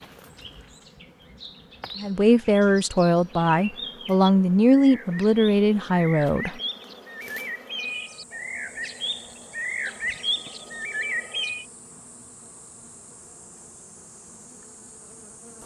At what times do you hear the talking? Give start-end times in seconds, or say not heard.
1.9-6.5.